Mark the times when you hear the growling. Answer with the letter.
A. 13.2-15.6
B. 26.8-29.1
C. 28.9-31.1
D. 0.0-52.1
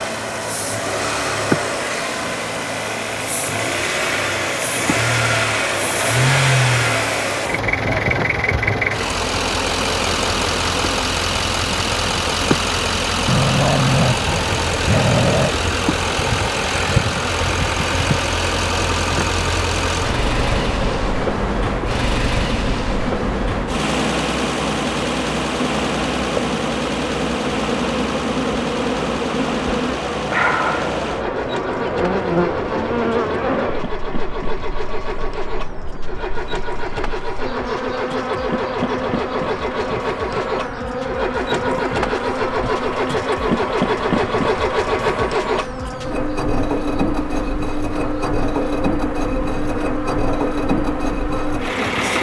A.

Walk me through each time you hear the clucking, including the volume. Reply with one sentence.
The clucking can't be heard in this clip.